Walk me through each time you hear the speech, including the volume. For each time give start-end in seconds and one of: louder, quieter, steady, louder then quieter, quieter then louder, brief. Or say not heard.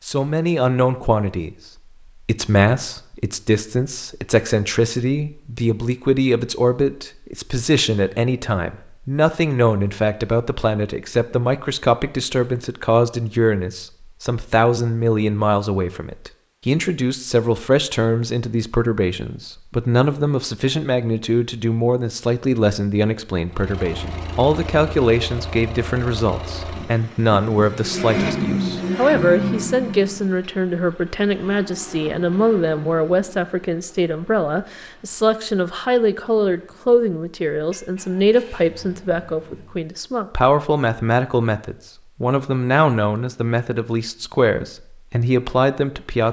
0.0-1.5 brief
2.2-46.2 steady.